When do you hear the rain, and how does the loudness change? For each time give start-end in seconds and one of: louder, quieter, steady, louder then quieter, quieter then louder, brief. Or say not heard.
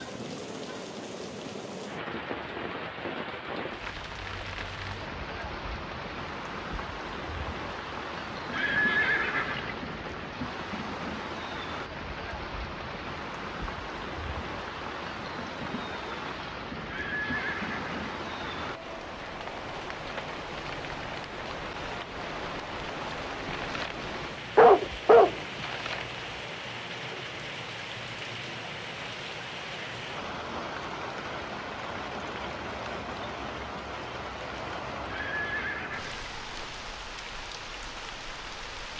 0.0-38.9 steady.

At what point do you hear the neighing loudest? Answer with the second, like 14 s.
9 s.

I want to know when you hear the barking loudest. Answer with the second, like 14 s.
25 s.